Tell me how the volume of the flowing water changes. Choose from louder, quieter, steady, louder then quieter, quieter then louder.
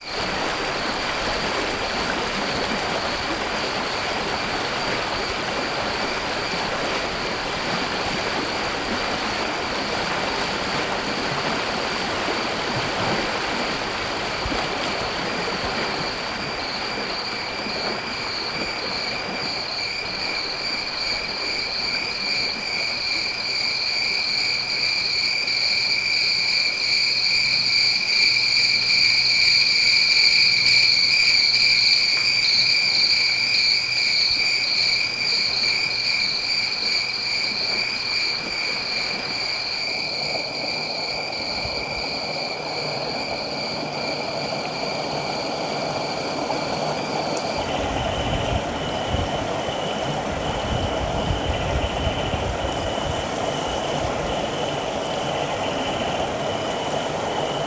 quieter then louder.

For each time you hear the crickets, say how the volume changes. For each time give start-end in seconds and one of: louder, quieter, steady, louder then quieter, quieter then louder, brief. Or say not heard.
0.0-57.6 louder then quieter.